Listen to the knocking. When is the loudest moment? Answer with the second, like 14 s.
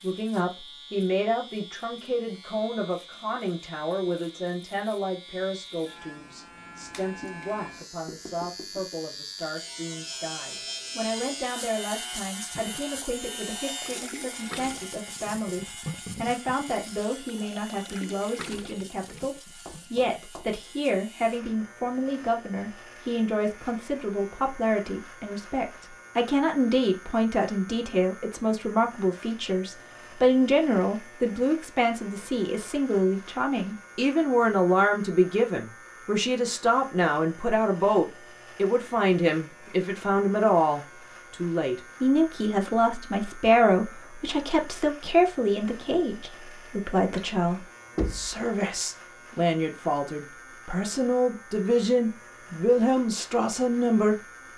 48 s.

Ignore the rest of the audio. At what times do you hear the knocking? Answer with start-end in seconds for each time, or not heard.
8.1-9.0, 19.6-20.6, 48.0-48.4.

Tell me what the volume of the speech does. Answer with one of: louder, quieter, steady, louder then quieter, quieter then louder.
louder.